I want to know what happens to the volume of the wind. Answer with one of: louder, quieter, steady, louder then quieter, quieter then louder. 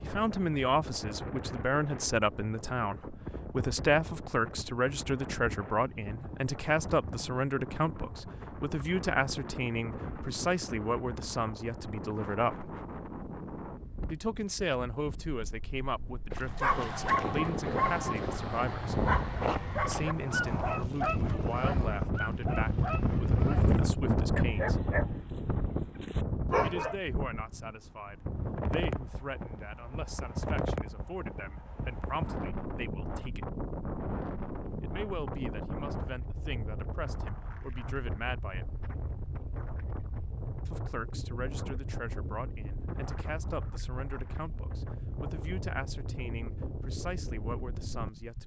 louder then quieter.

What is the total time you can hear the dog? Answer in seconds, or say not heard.
11 s.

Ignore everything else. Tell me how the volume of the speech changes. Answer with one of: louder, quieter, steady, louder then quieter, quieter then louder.
quieter.